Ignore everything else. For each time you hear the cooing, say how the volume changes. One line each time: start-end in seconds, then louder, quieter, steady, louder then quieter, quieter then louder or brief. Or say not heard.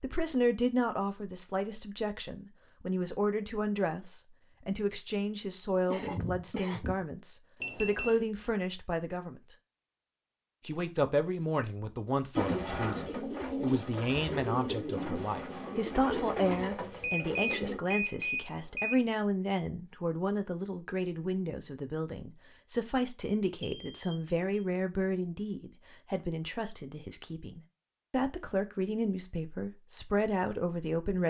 12.3-17.8 steady.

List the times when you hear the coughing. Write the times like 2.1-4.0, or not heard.
5.9-7.0.